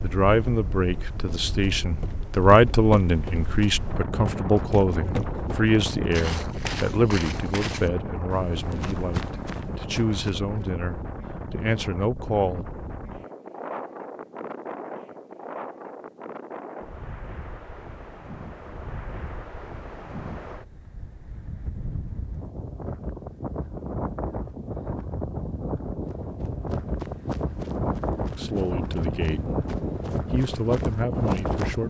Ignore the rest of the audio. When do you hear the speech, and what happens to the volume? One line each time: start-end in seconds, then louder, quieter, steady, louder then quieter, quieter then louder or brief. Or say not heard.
0.0-12.7 quieter
28.4-29.4 brief
30.3-31.8 brief.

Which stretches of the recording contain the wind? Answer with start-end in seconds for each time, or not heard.
0.0-31.8.